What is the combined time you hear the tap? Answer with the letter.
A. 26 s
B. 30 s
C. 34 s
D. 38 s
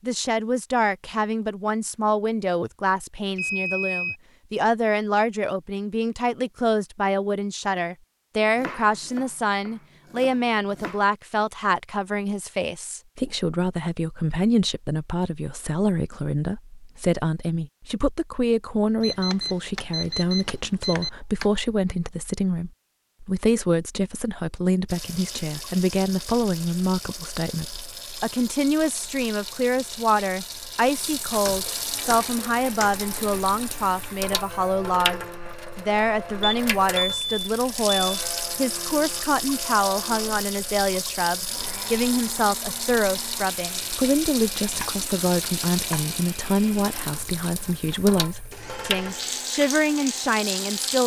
A.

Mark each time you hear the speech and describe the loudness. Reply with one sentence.
You can hear the speech from 0.0 to 51.0 s, at a steady volume.